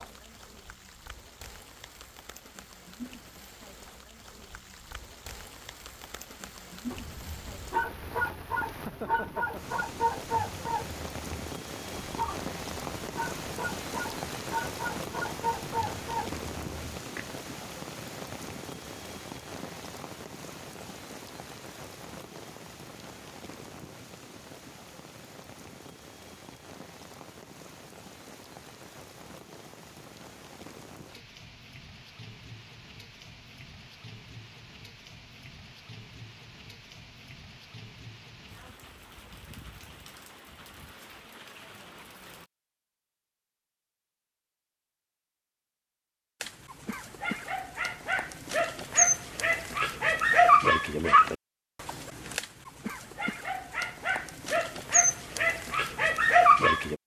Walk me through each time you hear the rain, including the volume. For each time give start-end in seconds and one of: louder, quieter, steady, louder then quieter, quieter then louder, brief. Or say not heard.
0.0-42.5 louder then quieter.